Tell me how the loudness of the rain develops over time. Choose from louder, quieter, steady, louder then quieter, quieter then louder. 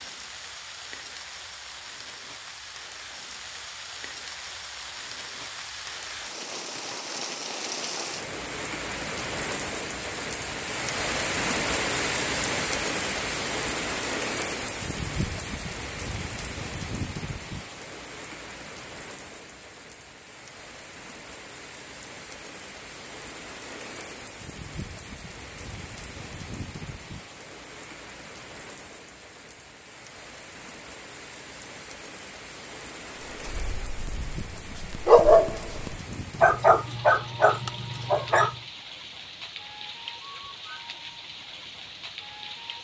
louder then quieter.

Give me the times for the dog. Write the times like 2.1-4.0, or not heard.
33.5-38.5.